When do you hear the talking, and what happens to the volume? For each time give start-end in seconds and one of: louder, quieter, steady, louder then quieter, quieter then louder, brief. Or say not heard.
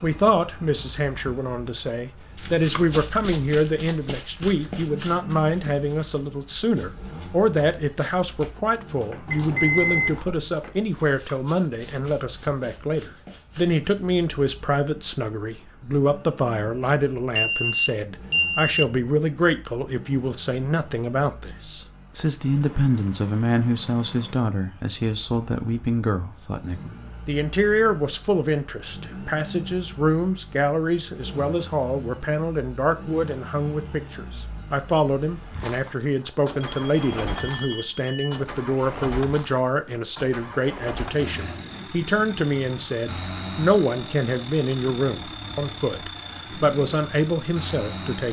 0.0-48.2 steady.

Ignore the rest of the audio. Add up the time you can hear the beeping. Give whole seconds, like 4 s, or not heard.
4 s.